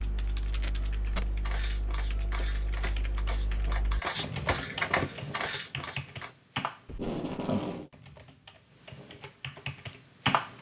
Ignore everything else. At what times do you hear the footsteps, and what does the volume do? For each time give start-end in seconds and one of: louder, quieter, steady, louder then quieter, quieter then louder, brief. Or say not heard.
1.2-6.3 louder then quieter.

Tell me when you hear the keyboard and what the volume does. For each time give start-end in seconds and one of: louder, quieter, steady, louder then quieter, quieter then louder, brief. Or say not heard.
0.0-10.5 louder then quieter.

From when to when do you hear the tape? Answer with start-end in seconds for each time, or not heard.
0.5-1.2, 6.8-7.9.